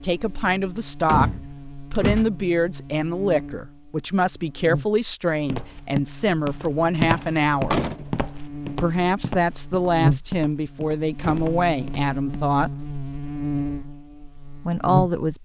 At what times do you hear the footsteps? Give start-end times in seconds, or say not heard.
5.3-12.4.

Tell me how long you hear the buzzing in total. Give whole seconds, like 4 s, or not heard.
15 s.